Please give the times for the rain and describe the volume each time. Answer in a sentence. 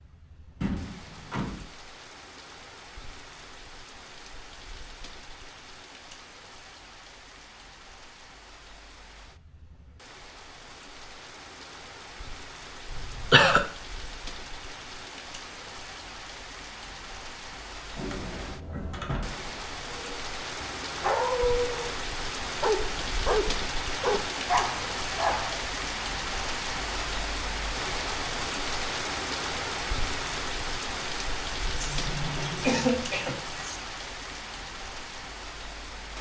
You can hear the rain from 0.0 to 36.1 s, getting louder.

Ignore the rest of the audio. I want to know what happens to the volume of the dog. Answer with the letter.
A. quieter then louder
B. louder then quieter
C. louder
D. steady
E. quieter
D.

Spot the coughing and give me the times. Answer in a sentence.
The coughing can be heard from 12.8 to 13.6 s and from 31.8 to 33.8 s.